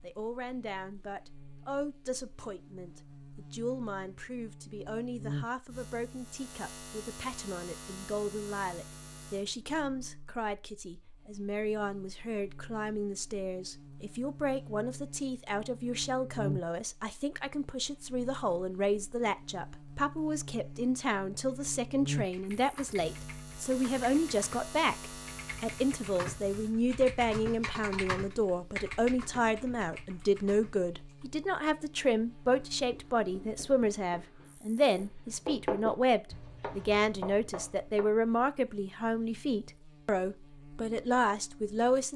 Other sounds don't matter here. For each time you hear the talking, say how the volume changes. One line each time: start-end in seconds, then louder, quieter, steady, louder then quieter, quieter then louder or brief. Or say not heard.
0.0-42.1 louder.